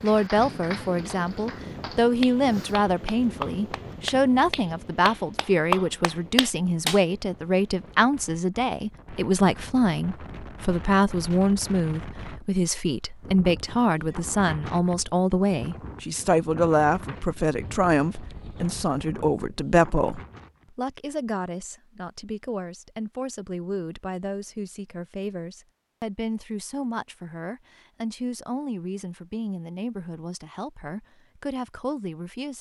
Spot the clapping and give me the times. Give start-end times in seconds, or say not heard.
0.0-7.0.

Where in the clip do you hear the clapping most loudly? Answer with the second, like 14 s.
6 s.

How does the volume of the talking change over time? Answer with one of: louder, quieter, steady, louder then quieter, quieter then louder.
quieter.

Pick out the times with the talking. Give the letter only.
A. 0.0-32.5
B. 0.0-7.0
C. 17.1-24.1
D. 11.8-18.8
A.